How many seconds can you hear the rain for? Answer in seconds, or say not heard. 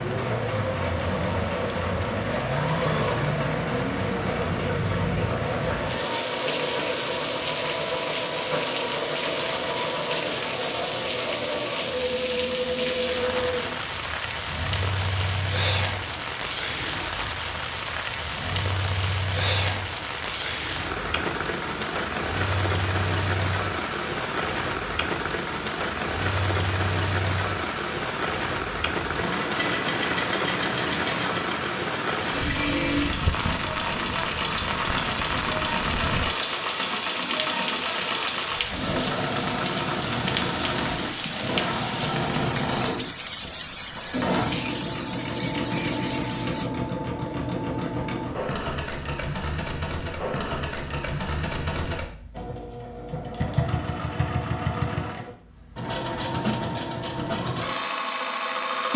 47 s.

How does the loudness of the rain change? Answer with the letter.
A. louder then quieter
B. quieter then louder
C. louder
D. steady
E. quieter
D.